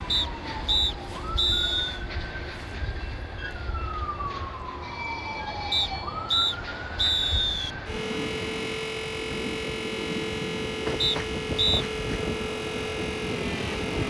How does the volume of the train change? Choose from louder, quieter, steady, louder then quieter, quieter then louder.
louder.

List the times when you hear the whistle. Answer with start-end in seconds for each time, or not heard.
0.1-2.0, 5.7-7.7, 11.0-11.8.